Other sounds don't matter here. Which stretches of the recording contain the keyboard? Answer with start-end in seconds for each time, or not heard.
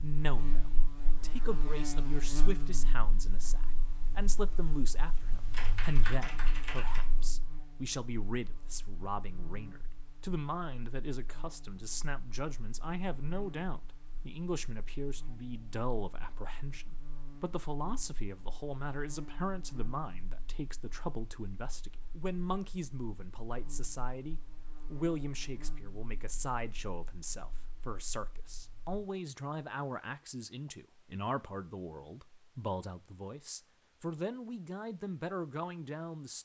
5.5-7.0.